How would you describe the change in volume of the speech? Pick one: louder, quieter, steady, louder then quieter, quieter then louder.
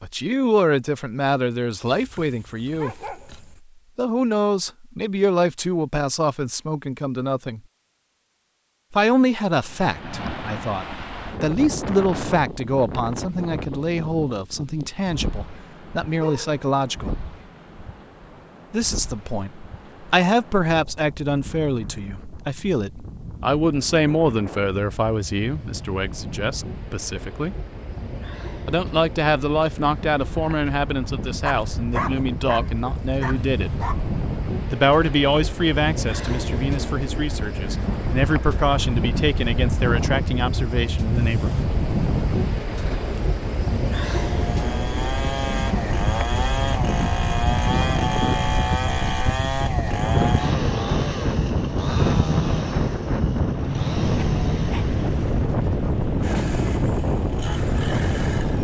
steady.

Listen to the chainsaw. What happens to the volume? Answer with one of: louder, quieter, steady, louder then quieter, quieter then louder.
quieter.